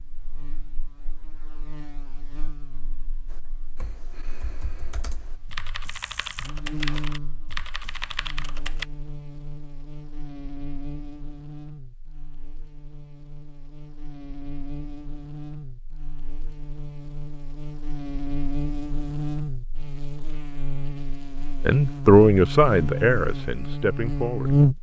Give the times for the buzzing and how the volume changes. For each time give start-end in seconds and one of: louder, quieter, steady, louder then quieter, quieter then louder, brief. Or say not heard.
0.0-24.7 louder.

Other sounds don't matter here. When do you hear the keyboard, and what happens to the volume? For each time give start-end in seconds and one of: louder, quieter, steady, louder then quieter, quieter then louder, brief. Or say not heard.
3.2-8.8 louder.